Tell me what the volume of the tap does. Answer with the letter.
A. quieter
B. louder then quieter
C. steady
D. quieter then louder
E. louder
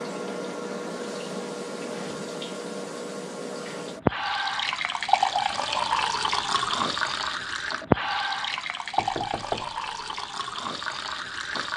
B.